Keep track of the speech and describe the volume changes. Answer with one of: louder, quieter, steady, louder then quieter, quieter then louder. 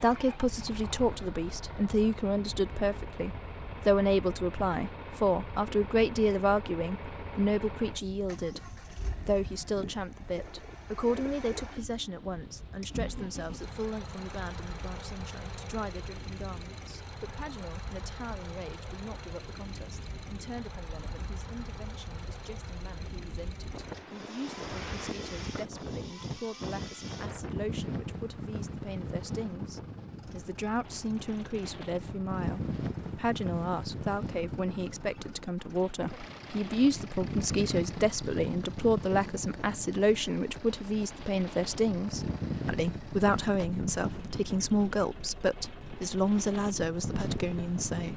quieter then louder.